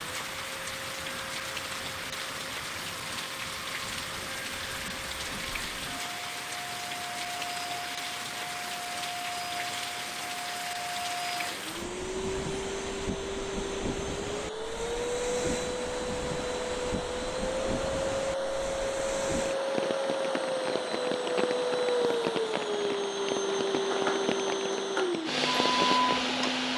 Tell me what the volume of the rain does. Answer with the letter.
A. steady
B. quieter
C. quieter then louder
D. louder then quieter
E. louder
A.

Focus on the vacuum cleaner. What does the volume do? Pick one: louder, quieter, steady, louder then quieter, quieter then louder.
louder.